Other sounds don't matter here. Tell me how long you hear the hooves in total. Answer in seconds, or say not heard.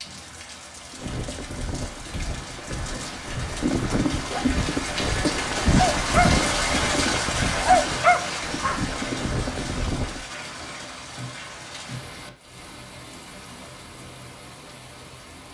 9 s.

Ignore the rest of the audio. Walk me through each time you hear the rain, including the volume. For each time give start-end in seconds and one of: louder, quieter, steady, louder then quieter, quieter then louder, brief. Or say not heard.
0.0-15.5 louder then quieter.